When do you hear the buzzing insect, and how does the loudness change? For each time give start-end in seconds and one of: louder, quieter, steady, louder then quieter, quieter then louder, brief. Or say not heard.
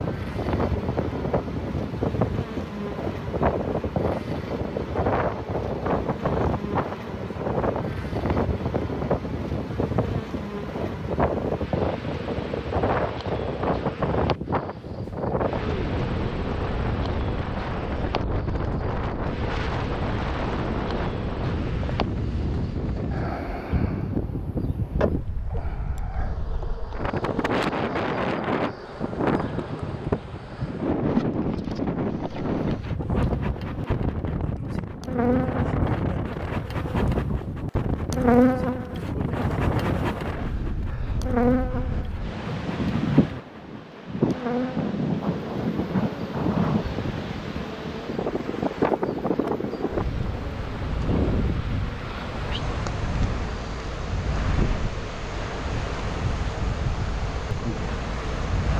0.0-58.7 louder then quieter.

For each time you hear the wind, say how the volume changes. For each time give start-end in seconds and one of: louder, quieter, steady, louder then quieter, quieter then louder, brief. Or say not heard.
0.0-58.7 steady.